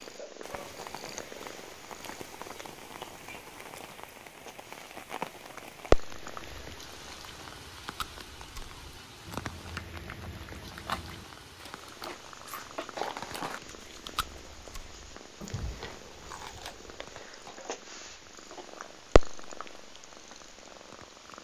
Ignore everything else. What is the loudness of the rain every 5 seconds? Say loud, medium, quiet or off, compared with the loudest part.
loud, loud, medium, quiet, quiet.